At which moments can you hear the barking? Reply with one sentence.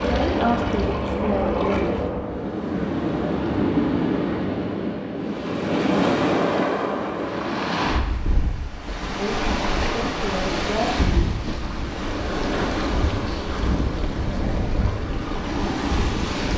The barking can't be heard in this clip.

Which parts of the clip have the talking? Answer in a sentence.
The talking can be heard from 0.0 to 1.9 s and from 9.2 to 11.2 s.